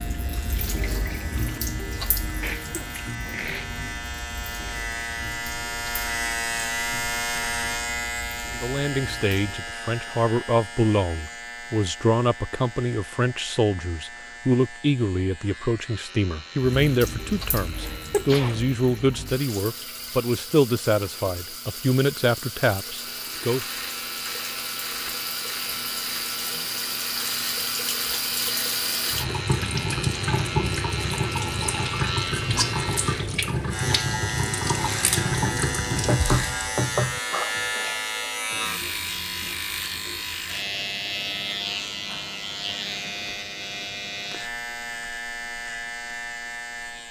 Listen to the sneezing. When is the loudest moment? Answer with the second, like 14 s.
18 s.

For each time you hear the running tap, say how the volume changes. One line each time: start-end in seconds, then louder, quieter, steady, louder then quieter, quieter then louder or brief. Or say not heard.
0.0-9.7 quieter
16.8-36.2 louder.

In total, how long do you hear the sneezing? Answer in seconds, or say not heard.
3 s.